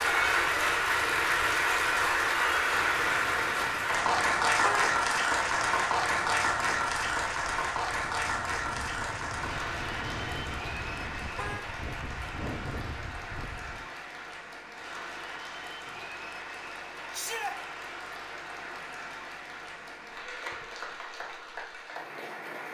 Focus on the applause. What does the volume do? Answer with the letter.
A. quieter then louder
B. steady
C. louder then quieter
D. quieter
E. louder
D.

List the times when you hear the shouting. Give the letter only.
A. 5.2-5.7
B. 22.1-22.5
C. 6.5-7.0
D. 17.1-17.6
D.